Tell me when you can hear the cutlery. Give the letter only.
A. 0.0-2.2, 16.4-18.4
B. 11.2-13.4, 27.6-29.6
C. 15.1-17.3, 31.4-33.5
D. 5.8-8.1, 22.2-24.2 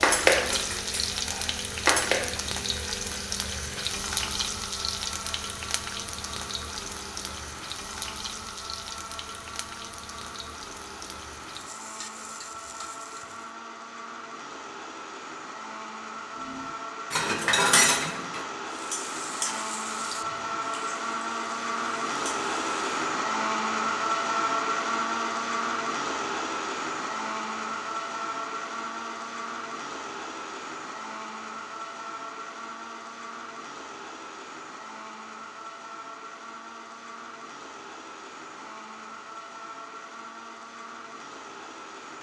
A.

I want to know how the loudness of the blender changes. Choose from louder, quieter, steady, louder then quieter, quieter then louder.
louder then quieter.